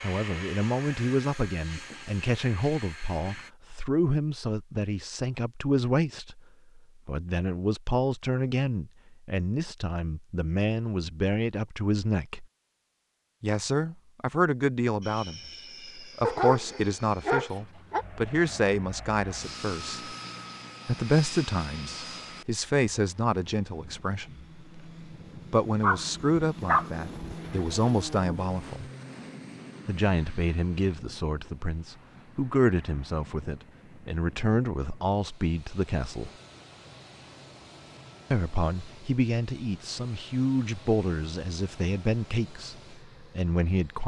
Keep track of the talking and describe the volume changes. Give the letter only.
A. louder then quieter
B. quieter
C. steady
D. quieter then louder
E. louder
C.